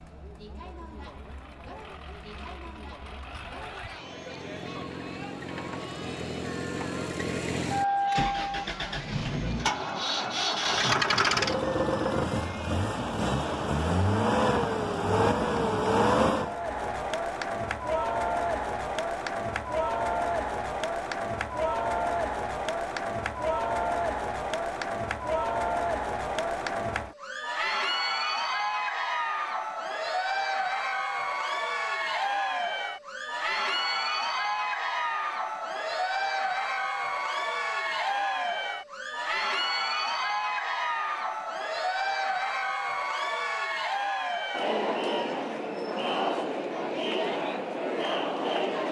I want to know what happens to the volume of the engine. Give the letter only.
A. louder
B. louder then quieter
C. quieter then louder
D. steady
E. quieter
A.